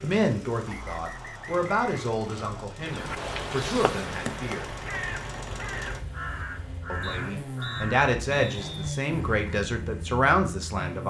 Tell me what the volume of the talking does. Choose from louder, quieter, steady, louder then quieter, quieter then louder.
quieter then louder.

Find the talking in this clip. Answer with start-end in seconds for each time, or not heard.
0.0-4.8, 6.9-11.0.